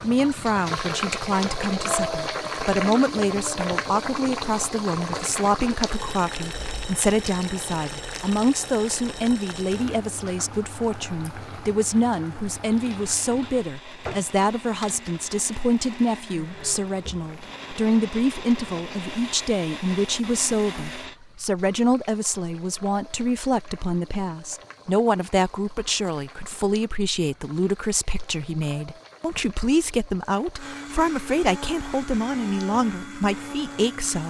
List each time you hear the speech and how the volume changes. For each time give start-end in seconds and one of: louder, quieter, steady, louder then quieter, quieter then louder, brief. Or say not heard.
0.0-34.2 steady.